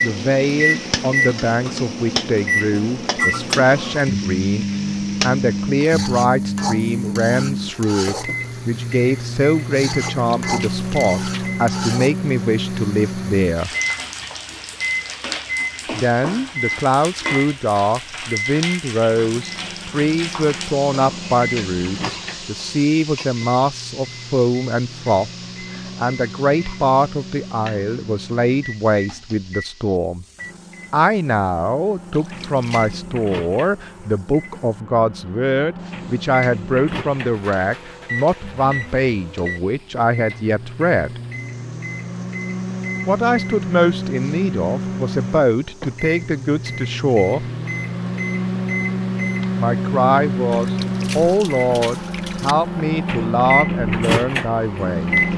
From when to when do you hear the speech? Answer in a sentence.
You can hear the speech from 0.0 to 13.7 s, from 15.9 to 30.2 s, from 30.9 to 41.2 s, from 43.0 to 47.5 s and from 49.5 to 55.3 s.